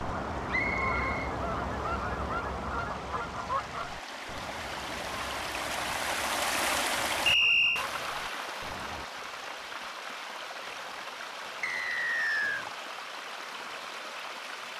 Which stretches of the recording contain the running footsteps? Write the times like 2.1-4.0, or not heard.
not heard.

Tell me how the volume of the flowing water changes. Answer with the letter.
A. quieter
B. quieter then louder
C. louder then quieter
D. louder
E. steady
C.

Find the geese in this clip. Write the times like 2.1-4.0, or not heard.
0.0-9.1.